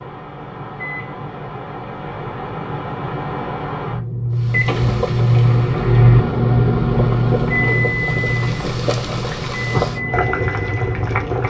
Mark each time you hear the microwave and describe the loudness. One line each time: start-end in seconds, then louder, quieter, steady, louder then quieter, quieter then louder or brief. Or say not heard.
0.0-11.4 louder then quieter.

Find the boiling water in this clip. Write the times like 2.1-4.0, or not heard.
4.3-11.4.